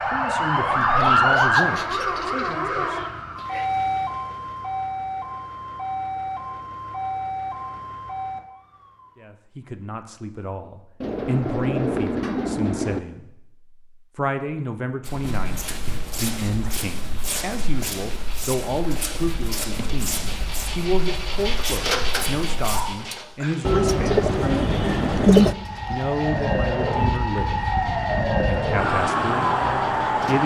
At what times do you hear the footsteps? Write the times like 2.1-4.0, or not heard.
15.1-22.9.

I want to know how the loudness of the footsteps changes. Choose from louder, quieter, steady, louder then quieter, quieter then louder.
steady.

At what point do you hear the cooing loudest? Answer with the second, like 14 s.
25 s.